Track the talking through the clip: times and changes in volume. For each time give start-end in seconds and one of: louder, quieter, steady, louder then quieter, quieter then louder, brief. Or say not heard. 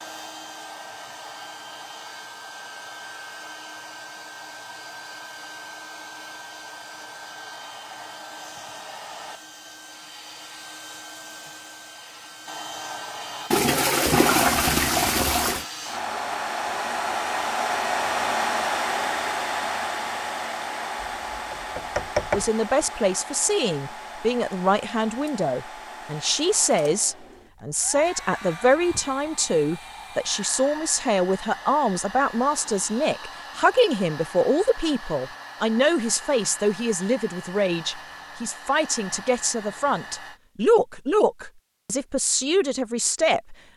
22.3-43.5 steady.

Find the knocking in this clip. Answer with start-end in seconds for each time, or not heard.
21.0-22.5.